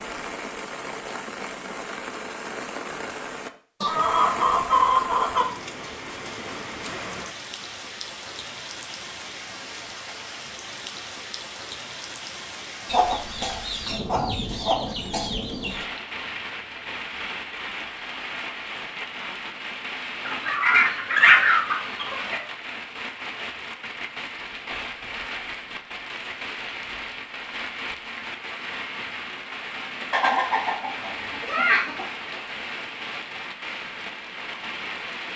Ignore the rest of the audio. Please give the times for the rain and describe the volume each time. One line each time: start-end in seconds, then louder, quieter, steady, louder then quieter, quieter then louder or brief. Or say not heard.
0.0-35.3 steady.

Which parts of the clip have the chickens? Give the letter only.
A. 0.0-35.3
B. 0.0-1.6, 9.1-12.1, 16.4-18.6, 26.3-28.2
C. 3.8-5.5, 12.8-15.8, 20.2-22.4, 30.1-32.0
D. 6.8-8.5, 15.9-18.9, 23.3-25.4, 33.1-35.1
C.